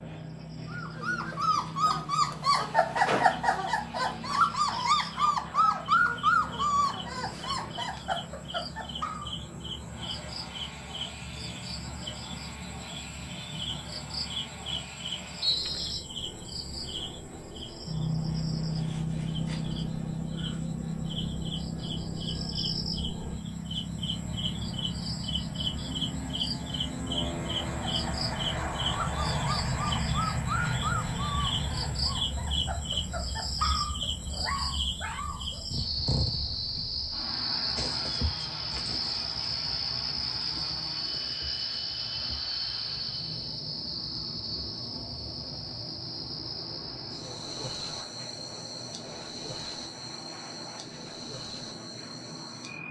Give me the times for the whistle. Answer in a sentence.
The whistle can be heard from 15.4 to 16.1 s.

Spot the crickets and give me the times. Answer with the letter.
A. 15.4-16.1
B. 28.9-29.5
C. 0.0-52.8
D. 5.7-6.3
C.